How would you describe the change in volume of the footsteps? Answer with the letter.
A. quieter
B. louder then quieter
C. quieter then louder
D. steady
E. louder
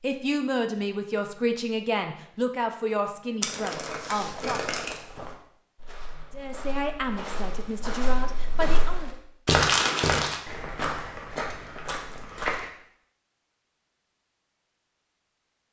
B.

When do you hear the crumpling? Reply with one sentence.
You can hear the crumpling from 3.4 to 5.0 s and from 9.4 to 10.4 s.